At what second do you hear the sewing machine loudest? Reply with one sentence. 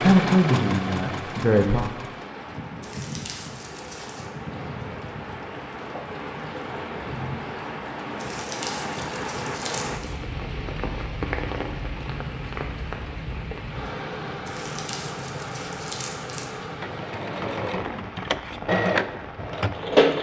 The loudest moment of the sewing machine is at 20 seconds.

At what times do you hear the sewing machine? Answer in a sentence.
You can hear the sewing machine from 0.0 to 2.3 s and from 16.8 to 20.1 s.